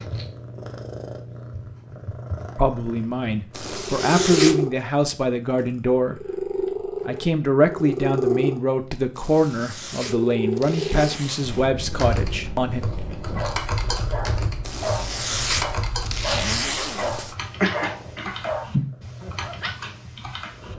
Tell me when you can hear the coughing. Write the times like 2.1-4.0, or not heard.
17.6-18.9.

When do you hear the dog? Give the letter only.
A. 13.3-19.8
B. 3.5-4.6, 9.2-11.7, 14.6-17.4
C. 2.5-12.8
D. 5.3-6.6
A.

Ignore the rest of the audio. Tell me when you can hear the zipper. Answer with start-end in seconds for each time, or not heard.
3.5-4.6, 9.2-11.7, 14.6-17.4.